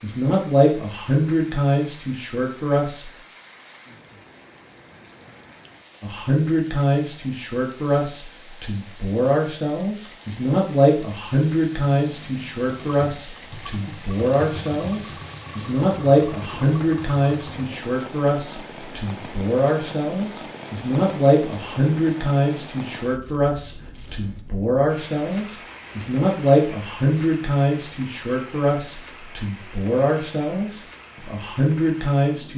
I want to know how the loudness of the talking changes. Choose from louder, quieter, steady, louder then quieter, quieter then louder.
steady.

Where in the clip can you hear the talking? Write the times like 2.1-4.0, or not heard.
0.0-3.0, 6.0-32.5.